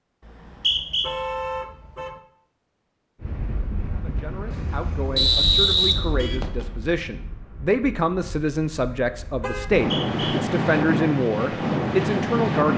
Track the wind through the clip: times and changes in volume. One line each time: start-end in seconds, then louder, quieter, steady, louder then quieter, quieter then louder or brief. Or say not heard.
3.2-12.7 quieter then louder.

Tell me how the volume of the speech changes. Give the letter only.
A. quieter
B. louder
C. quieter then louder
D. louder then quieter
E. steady
B.